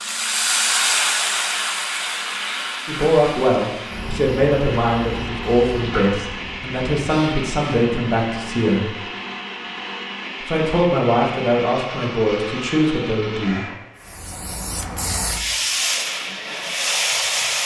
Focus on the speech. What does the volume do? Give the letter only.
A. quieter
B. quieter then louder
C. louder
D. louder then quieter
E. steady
E.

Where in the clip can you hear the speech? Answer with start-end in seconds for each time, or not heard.
2.9-8.9, 10.4-13.7.